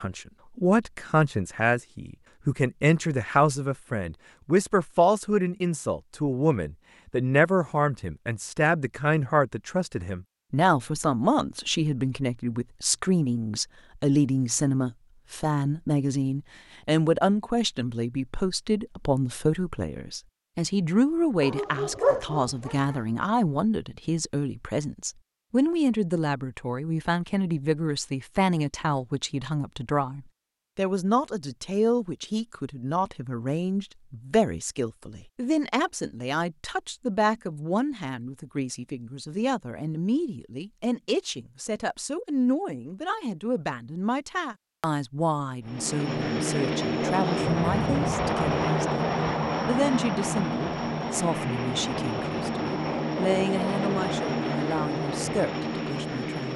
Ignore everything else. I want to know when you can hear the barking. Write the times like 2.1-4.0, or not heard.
21.4-22.9.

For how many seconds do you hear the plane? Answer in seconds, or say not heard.
11 s.